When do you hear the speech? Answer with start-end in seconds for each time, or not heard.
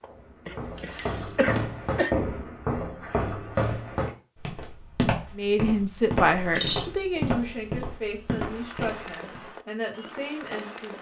5.3-10.9.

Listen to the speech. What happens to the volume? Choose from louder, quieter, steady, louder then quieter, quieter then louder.
quieter.